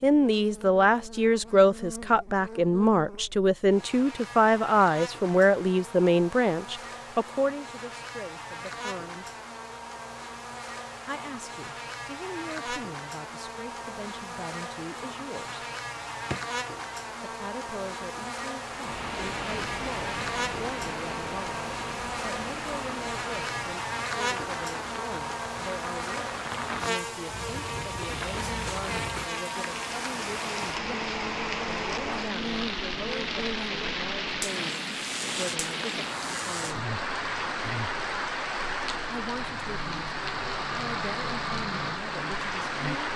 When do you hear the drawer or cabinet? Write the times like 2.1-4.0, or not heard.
15.9-16.4.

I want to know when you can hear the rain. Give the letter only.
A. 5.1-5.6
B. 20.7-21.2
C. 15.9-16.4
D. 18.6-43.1
D.